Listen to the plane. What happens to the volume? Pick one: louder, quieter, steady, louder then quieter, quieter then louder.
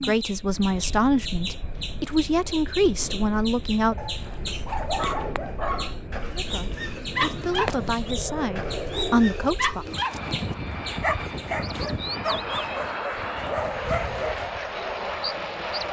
louder.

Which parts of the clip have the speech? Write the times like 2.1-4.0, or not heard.
0.0-4.0, 6.3-9.8.